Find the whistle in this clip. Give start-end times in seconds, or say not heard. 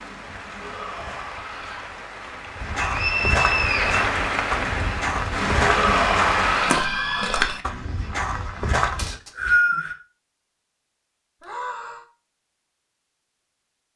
2.8-4.0, 8.9-9.9.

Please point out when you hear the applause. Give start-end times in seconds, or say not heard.
0.0-6.8.